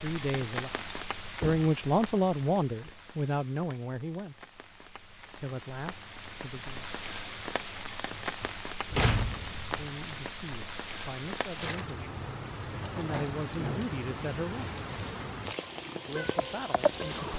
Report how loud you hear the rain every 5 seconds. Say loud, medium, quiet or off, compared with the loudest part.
medium, loud, loud, loud.